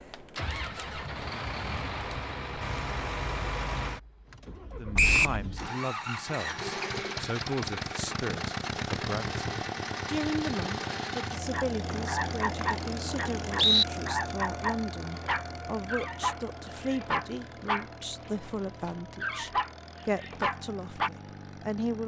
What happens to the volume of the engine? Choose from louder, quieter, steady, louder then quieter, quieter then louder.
quieter.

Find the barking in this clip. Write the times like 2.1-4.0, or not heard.
11.5-21.1.